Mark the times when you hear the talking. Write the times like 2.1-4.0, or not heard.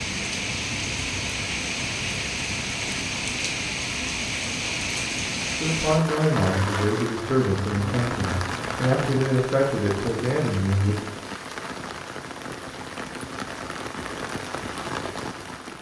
5.5-11.0.